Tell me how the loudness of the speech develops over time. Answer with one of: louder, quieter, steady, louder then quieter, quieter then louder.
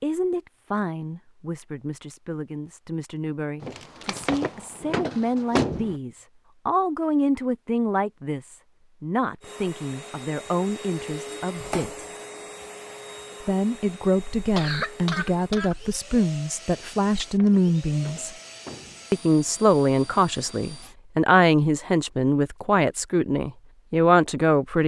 louder.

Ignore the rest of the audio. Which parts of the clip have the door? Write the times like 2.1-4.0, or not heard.
3.6-6.0, 16.7-19.1.